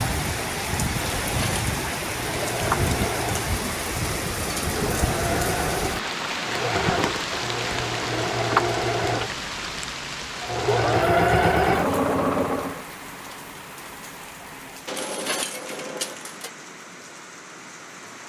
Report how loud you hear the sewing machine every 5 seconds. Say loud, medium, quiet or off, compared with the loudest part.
medium, medium, loud, off.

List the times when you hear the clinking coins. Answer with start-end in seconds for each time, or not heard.
1.0-1.8, 14.8-16.5.